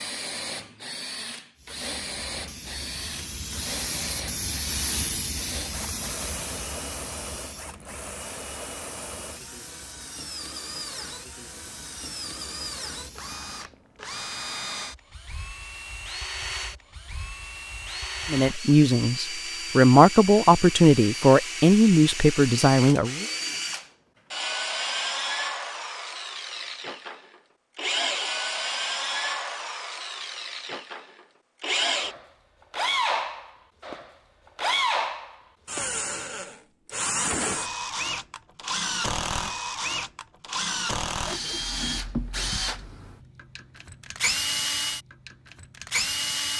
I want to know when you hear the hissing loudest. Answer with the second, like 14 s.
5 s.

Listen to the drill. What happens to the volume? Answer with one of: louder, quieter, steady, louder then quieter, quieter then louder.
louder.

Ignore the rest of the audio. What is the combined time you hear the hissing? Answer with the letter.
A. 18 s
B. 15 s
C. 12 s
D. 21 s
C.